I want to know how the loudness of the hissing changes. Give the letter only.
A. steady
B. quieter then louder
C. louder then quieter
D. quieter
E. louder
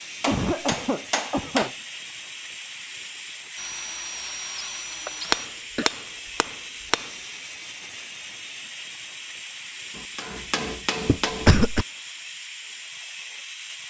A.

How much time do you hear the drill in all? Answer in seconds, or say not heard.
2 s.